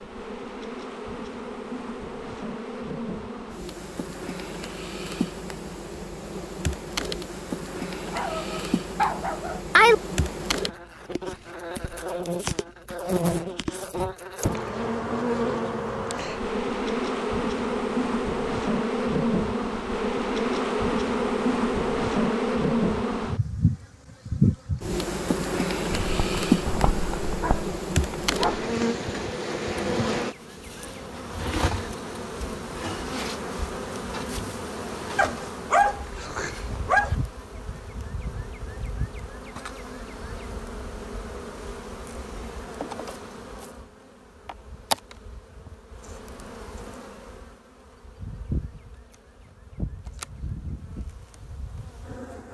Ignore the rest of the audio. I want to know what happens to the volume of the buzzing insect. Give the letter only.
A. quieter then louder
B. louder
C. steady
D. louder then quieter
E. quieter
D.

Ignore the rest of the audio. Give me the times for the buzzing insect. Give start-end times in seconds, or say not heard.
0.0-52.5.